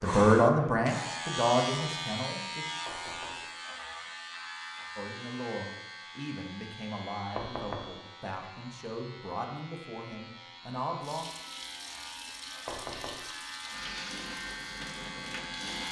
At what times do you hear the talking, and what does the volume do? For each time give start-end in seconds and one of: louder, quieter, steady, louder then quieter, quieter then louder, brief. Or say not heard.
0.0-2.8 brief
5.0-11.2 steady.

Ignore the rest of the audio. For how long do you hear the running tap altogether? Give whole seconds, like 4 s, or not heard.
5 s.